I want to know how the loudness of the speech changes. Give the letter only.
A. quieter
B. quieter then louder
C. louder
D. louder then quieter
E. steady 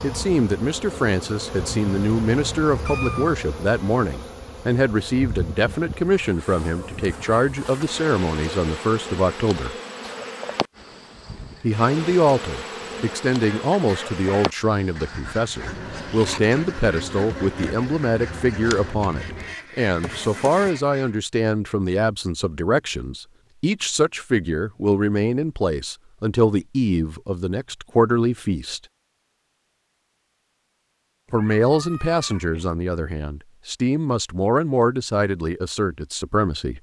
E.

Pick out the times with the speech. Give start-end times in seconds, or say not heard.
0.0-9.8, 11.6-28.8, 31.3-36.7.